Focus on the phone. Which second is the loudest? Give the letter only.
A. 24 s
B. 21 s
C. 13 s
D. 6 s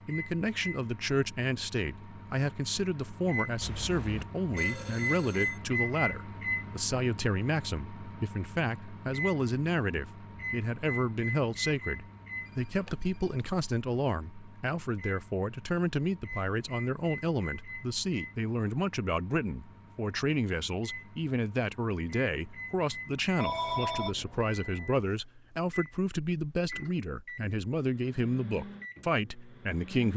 A.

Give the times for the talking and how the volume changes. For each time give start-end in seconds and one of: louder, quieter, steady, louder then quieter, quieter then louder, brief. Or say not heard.
0.1-30.1 steady.